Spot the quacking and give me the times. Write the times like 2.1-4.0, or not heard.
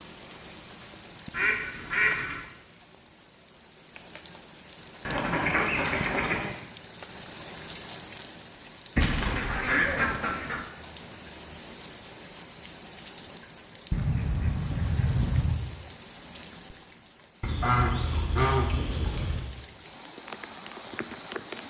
1.3-2.5, 5.0-6.5, 8.9-10.7, 13.9-15.6, 17.4-19.4.